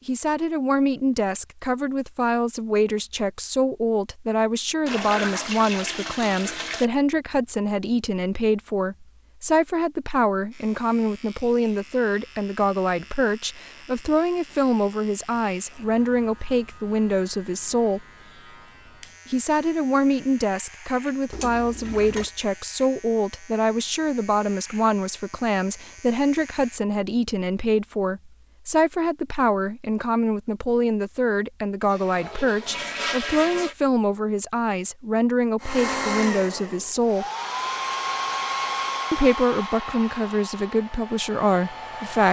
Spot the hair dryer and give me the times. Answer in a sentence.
The hair dryer can be heard from 35.6 to 42.2 s.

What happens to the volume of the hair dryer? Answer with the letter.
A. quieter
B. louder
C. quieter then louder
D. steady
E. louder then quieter
A.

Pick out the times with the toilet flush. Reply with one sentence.
The toilet flush can be heard from 4.8 to 6.8 s, from 21.3 to 22.3 s and from 31.8 to 33.8 s.